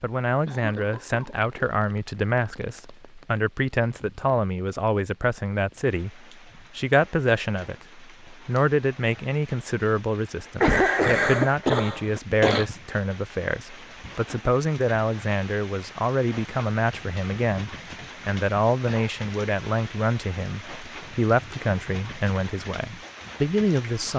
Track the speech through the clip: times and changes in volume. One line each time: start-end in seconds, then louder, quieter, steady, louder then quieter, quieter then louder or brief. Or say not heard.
0.0-24.1 steady.